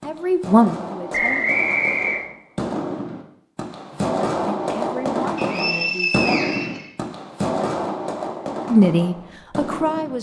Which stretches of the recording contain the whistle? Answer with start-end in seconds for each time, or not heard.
1.1-2.2, 5.3-6.9.